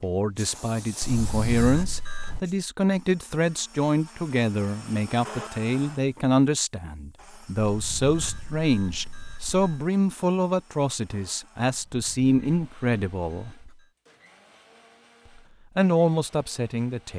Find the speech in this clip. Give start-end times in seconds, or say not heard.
0.0-13.5, 15.8-17.1.